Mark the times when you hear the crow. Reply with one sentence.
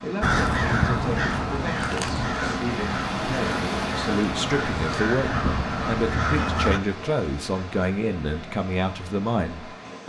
The crow can be heard from 0.2 to 6.8 s.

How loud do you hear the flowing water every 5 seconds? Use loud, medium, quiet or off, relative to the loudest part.
loud, medium.